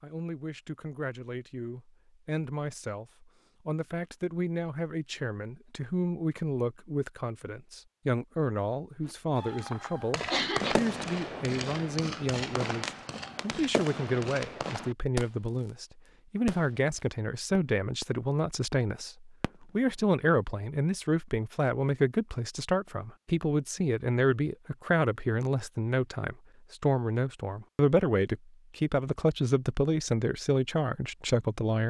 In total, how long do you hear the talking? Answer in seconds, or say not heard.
32 s.